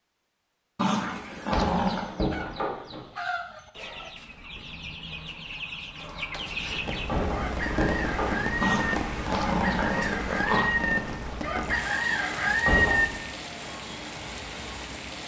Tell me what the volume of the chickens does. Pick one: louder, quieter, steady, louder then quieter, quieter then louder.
louder.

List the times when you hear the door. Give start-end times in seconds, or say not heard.
1.1-3.0, 6.9-8.4, 12.2-13.2.